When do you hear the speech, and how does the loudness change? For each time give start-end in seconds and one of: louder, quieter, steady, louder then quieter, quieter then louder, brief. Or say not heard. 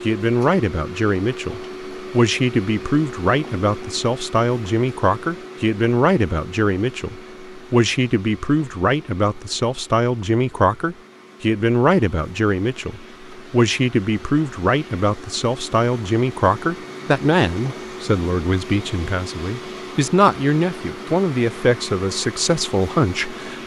0.0-23.6 steady.